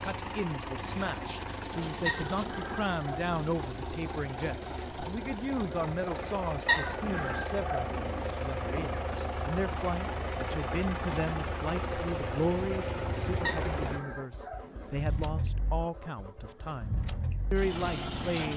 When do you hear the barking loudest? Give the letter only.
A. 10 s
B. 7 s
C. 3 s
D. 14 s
B.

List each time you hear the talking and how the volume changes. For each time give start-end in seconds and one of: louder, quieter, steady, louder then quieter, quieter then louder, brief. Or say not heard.
0.0-18.5 steady.